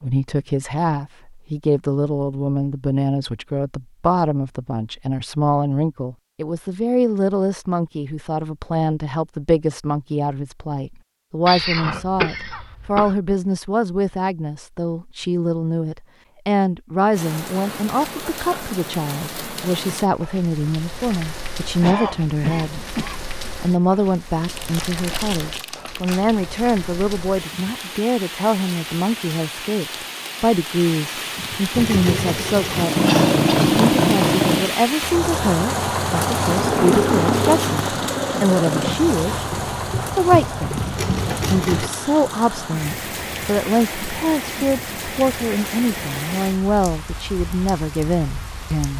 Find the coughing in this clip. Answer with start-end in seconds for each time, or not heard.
11.4-13.2, 21.8-23.3, 33.0-33.6.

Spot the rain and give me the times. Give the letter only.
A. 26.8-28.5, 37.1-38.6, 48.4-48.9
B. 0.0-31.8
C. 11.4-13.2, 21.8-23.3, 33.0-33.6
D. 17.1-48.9
D.